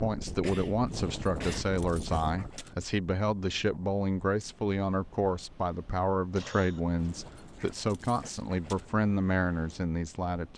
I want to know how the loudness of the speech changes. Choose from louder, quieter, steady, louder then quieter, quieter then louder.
steady.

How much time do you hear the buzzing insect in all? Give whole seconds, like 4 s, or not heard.
not heard.